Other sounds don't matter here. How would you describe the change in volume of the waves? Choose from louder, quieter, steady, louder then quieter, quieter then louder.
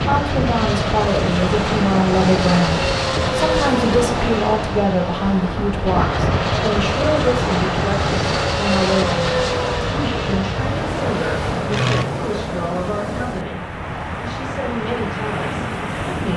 steady.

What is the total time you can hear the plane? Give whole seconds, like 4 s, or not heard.
12 s.